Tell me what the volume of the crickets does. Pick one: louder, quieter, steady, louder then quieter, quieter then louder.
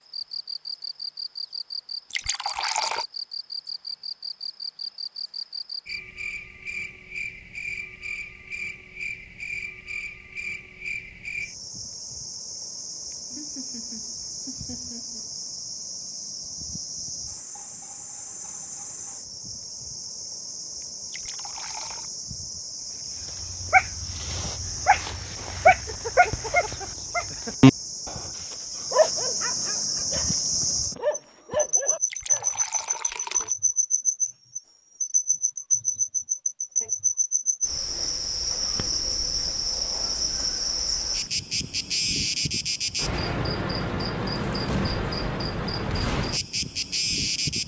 louder.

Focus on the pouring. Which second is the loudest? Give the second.
3 s.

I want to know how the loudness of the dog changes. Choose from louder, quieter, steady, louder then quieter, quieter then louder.
louder then quieter.